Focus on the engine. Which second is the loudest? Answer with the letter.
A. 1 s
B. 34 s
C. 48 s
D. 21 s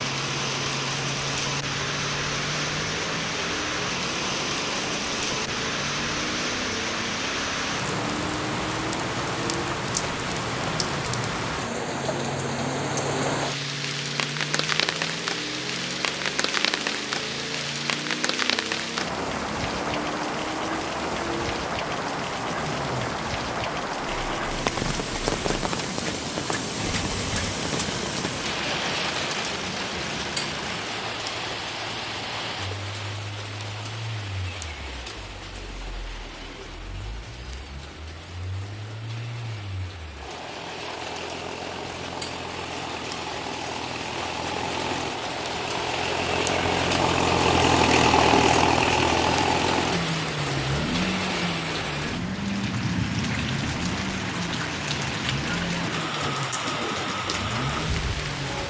C.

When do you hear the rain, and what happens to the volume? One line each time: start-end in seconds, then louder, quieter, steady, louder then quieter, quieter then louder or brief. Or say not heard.
0.0-58.6 quieter then louder.